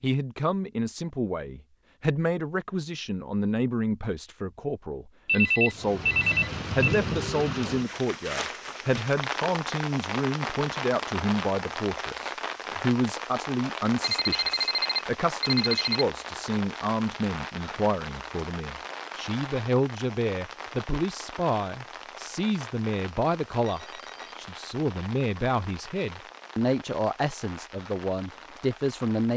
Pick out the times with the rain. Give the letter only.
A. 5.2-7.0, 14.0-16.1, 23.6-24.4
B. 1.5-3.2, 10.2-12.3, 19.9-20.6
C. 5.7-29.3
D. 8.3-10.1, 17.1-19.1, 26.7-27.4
C.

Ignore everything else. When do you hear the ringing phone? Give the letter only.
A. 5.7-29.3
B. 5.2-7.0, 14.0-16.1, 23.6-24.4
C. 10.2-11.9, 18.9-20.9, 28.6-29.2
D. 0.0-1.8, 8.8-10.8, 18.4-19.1
B.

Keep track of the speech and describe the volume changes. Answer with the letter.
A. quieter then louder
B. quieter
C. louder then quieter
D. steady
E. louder
D.